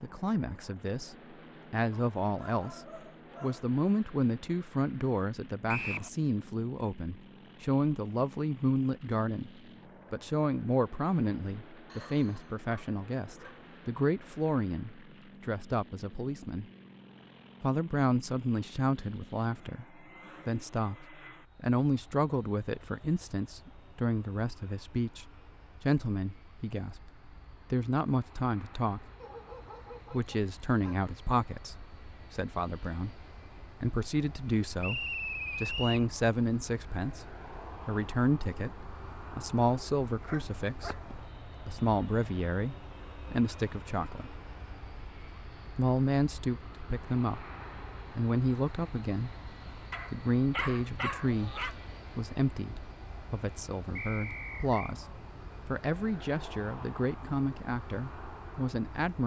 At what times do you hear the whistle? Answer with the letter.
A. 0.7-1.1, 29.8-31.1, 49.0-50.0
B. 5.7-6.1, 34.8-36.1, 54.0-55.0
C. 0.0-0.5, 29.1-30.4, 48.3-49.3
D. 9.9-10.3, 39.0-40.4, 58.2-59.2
B.